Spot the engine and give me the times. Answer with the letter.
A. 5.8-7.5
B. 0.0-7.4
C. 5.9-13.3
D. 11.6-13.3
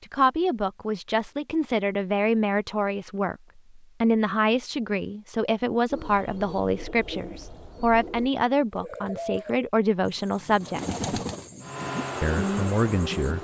D.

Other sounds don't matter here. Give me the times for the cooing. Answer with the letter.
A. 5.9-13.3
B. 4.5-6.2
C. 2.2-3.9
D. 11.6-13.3
A.